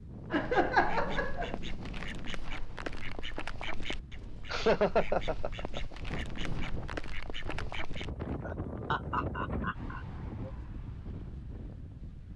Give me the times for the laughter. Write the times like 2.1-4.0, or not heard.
0.3-1.6, 4.5-5.8, 8.4-10.5.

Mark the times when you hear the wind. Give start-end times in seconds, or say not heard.
0.0-12.3.